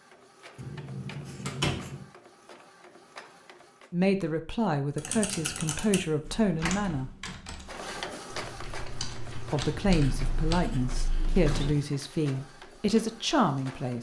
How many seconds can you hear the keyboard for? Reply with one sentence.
You can hear the keyboard for 6 seconds altogether.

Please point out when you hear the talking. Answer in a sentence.
You can hear the talking from 3.9 to 7.1 s and from 9.5 to 13.9 s.